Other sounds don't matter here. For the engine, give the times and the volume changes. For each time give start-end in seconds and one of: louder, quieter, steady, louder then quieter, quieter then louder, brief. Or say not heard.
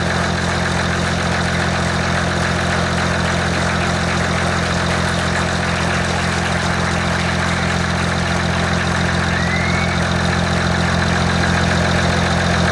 0.0-12.6 steady.